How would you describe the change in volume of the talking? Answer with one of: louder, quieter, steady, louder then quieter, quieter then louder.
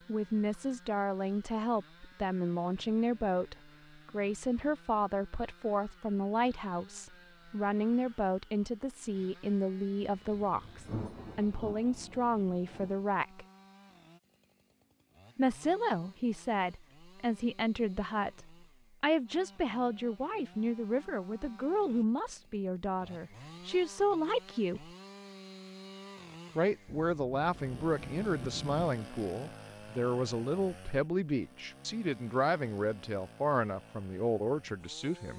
steady.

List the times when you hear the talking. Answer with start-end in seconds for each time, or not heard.
0.1-13.4, 15.3-24.9, 26.6-35.3.